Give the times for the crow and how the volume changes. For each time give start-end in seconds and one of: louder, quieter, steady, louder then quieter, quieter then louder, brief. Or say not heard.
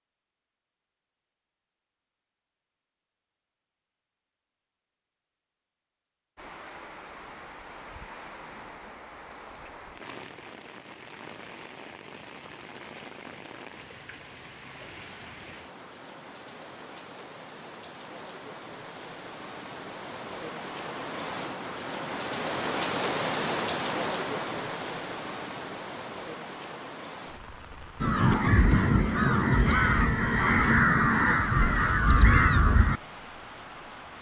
28.0-33.0 steady.